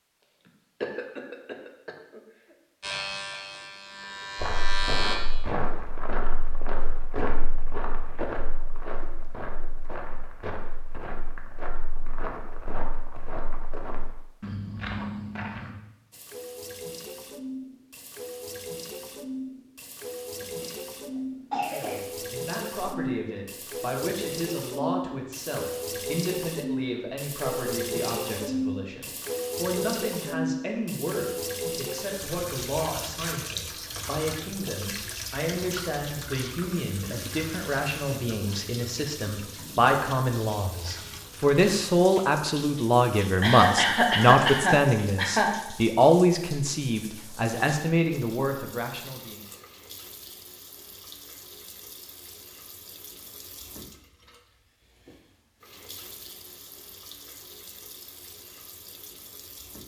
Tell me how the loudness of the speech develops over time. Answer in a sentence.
The volume of the speech goes up.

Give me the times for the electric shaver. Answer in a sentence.
The electric shaver can be heard from 2.8 to 5.2 s.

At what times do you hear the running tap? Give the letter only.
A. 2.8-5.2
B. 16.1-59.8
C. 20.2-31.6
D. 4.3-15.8
B.